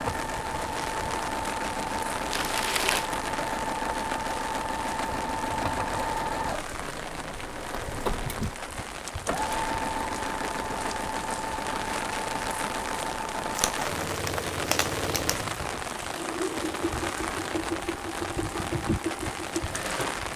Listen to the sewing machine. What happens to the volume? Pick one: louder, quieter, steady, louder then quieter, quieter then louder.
steady.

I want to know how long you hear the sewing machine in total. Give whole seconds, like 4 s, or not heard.
20 s.